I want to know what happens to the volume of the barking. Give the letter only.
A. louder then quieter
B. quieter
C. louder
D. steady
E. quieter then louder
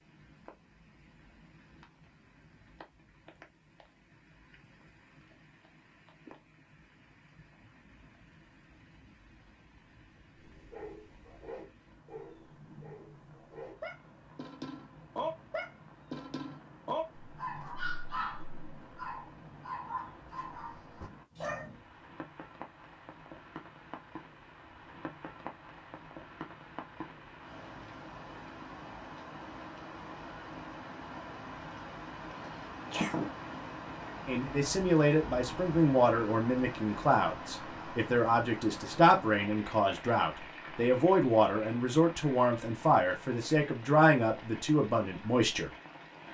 A.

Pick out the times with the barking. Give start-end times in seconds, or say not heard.
10.4-21.7.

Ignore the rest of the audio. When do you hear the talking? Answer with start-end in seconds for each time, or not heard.
34.2-45.7.